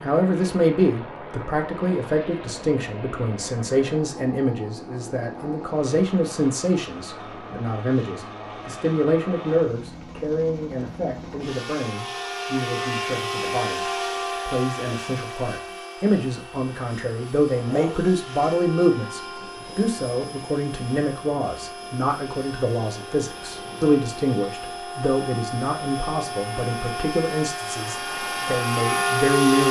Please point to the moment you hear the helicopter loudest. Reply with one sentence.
The volume of the helicopter peaks at 29 seconds.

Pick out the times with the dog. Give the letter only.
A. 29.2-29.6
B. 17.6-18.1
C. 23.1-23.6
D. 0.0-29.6
B.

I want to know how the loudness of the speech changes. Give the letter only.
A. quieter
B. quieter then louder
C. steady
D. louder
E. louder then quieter
C.